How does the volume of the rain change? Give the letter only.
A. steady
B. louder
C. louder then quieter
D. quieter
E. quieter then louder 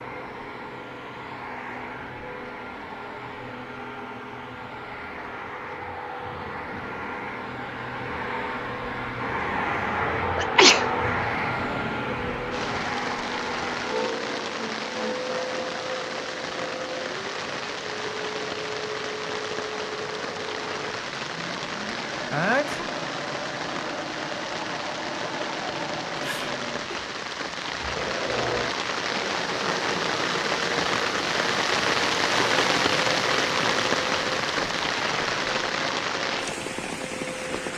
B.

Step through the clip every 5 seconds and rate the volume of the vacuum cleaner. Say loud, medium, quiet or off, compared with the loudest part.
medium, loud, loud, medium, medium, medium, medium, medium.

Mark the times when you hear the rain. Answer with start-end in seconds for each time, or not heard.
12.5-37.7.